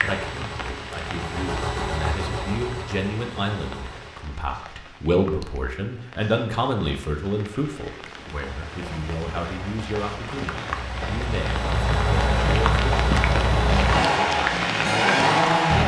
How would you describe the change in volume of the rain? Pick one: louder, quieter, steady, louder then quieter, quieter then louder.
quieter then louder.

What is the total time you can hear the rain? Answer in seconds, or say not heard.
16 s.